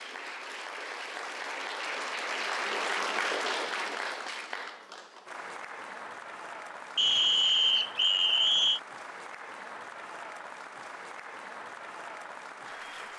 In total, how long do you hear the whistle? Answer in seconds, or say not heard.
2 s.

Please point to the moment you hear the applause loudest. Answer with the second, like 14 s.
3 s.